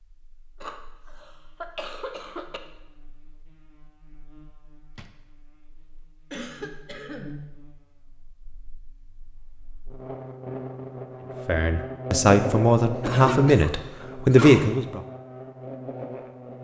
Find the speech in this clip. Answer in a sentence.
You can hear the speech from 11.4 to 15.0 s.